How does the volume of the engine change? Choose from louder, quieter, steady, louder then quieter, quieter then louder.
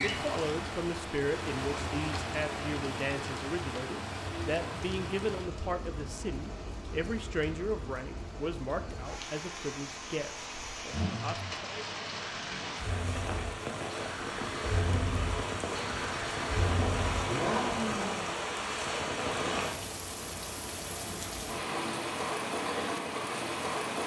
louder.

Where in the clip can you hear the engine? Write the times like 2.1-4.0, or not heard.
10.9-18.3.